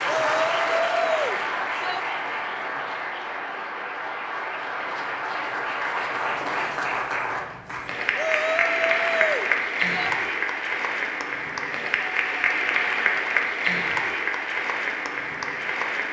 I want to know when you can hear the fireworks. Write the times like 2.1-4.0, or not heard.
not heard.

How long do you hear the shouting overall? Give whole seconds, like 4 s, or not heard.
4 s.